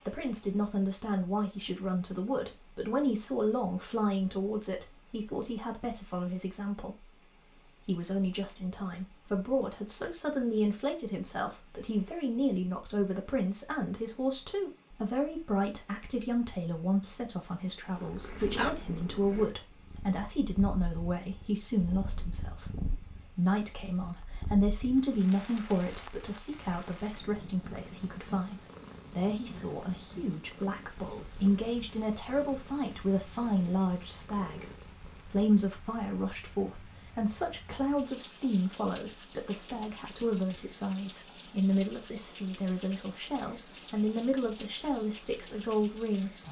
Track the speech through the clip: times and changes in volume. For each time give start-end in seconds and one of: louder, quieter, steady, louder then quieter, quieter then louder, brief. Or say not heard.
0.1-46.4 steady.